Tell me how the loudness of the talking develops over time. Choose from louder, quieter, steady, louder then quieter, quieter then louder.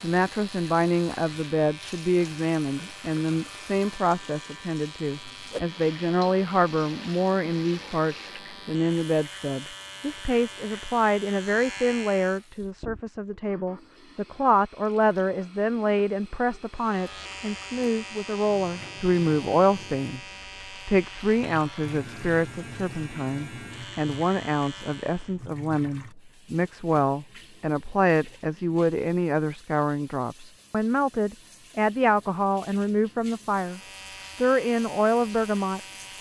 steady.